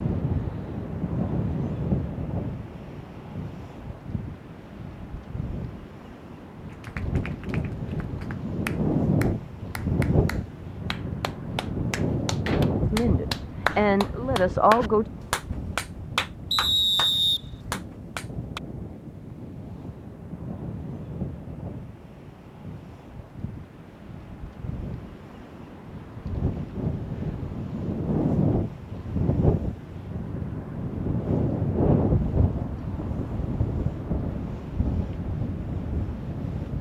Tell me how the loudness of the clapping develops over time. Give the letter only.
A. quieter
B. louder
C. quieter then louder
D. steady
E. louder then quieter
B.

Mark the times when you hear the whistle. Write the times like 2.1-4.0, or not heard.
16.5-17.4.